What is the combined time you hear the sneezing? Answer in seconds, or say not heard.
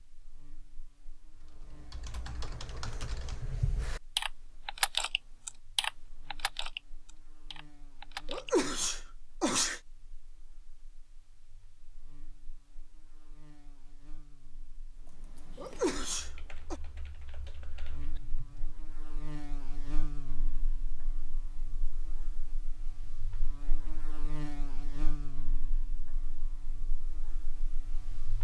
3 s.